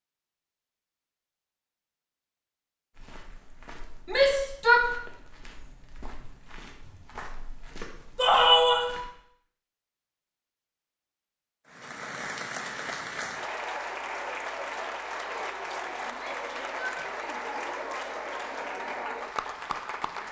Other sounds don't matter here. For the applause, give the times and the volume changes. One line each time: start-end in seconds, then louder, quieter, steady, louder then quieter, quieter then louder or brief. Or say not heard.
11.7-20.2 steady.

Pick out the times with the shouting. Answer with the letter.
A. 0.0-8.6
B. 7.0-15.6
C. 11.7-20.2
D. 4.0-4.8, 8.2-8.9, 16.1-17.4
D.